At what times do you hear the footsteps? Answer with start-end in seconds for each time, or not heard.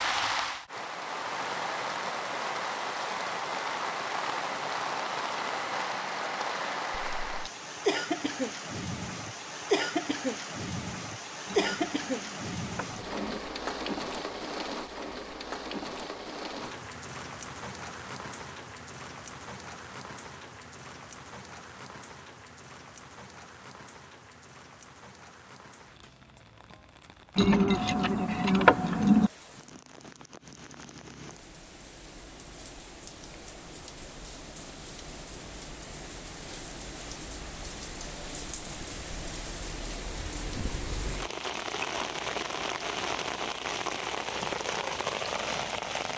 not heard.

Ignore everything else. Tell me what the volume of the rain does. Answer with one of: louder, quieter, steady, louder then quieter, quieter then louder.
quieter then louder.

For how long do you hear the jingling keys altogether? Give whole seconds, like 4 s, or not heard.
4 s.